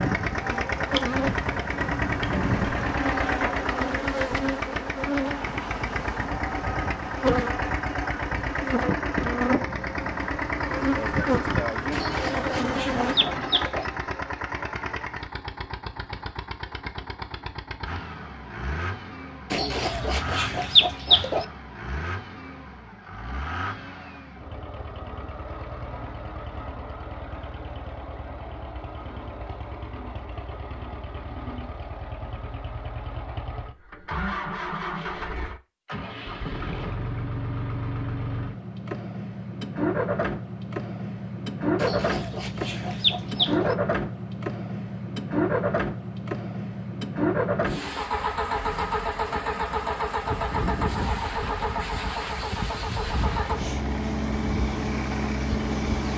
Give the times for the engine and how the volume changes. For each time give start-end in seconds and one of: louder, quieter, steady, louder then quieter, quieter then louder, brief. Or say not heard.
0.0-56.1 quieter then louder.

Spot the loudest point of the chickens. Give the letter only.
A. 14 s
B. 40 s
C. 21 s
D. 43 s
C.